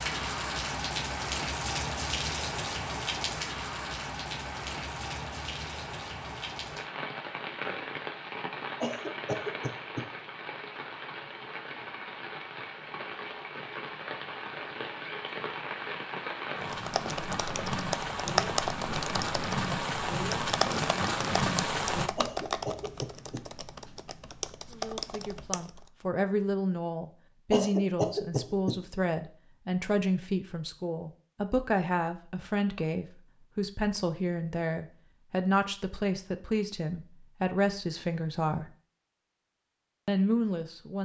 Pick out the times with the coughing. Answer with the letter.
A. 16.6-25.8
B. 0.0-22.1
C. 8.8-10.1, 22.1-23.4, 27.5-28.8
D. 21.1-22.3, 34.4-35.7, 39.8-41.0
C.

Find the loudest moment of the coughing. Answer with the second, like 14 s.
28 s.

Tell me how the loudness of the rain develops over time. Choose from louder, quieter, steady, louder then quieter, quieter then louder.
quieter then louder.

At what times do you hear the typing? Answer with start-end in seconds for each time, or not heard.
16.6-25.8.